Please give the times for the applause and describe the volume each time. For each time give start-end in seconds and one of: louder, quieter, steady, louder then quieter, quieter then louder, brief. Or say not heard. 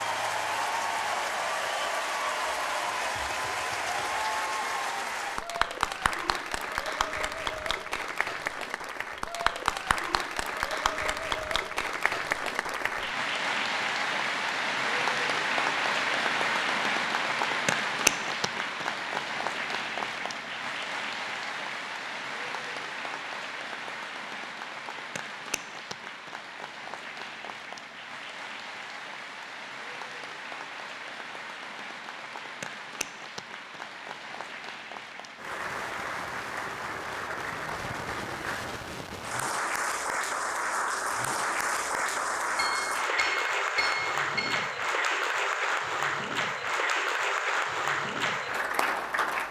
0.0-49.4 quieter then louder.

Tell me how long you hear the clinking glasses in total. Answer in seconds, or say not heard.
2 s.